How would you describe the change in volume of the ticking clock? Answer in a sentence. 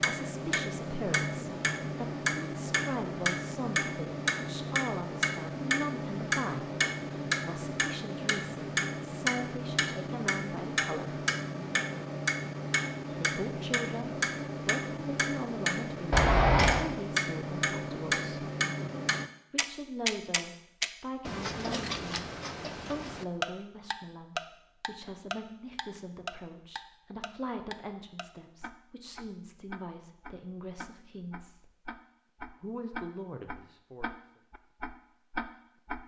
The volume of the ticking clock goes down.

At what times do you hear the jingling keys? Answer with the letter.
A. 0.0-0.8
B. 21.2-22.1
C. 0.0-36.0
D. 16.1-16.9
D.